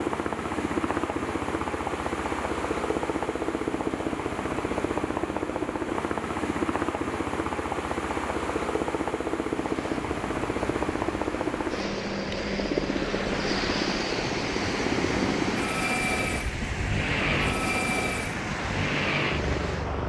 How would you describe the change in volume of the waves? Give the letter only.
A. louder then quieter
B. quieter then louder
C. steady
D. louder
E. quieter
D.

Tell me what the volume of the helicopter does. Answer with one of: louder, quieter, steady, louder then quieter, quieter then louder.
steady.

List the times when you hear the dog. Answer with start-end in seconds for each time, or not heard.
not heard.